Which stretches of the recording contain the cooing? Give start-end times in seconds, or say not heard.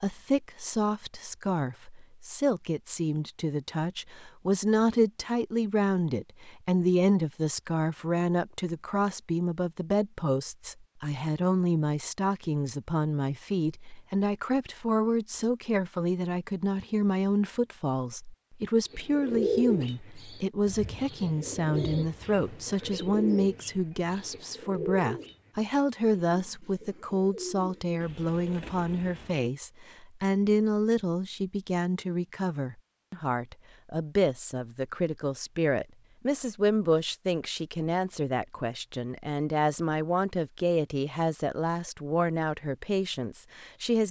18.9-29.5.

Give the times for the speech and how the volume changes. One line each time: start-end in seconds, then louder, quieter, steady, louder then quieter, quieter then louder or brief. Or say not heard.
0.0-44.0 steady.